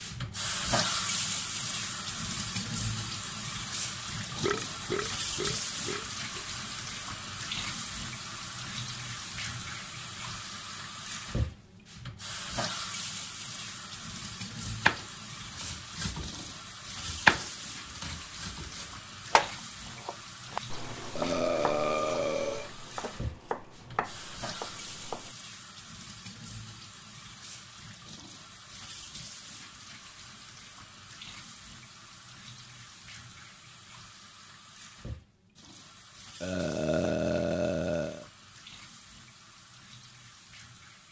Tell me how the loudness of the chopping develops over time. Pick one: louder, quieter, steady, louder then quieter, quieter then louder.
louder then quieter.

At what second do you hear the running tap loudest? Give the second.
1 s.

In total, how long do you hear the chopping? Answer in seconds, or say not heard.
11 s.